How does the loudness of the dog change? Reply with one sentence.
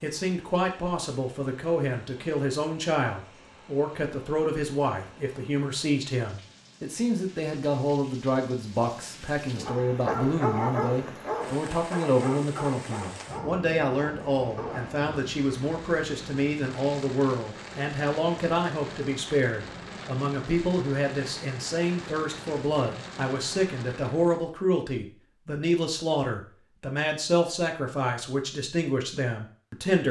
The volume of the dog goes down.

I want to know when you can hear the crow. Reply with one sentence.
The crow can't be heard in this clip.